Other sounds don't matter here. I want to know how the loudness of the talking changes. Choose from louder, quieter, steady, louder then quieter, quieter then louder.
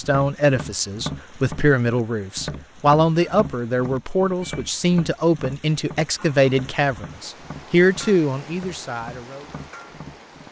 steady.